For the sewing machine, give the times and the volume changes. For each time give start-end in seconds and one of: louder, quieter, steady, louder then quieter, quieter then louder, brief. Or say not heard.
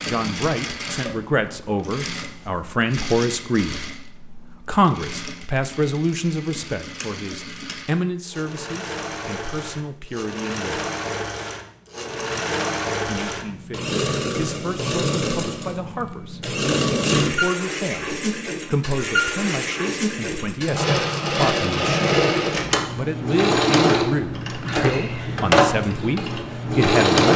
0.0-27.3 louder.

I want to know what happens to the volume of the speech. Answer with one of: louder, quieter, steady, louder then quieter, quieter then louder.
quieter then louder.